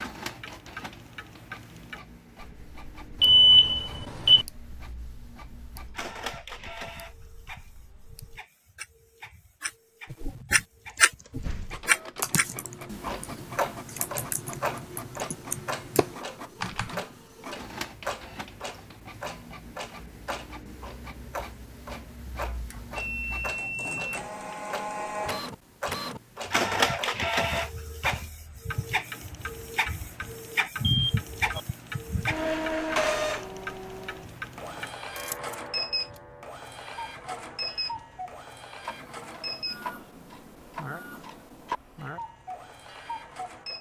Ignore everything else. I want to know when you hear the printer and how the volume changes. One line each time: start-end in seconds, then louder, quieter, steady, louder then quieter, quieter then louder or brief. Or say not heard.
0.0-43.7 louder then quieter.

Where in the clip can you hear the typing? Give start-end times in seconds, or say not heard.
10.8-17.0.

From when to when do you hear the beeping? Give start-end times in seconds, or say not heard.
3.2-4.5, 22.7-24.2, 30.8-31.6.